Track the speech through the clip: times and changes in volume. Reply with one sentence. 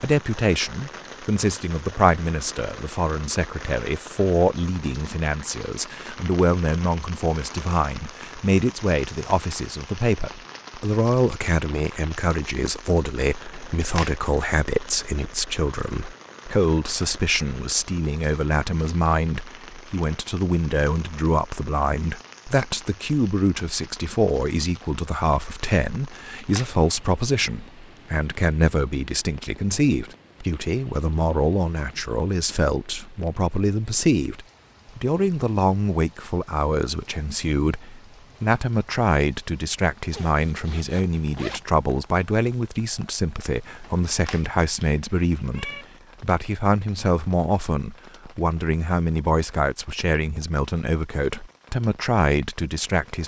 You can hear the speech from 0.0 to 53.2 s, at a steady volume.